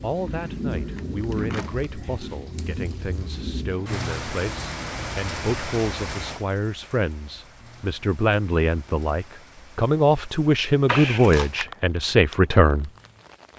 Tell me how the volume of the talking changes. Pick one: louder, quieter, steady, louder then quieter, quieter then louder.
louder.